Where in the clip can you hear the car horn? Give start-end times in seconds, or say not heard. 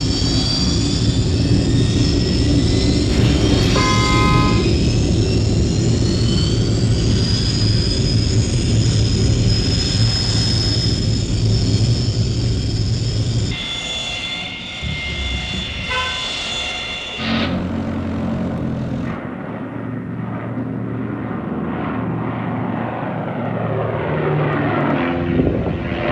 3.0-4.5, 14.8-16.2.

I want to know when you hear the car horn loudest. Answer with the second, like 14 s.
4 s.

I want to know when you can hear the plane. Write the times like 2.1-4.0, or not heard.
0.0-26.0.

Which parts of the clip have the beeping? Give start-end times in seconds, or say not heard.
not heard.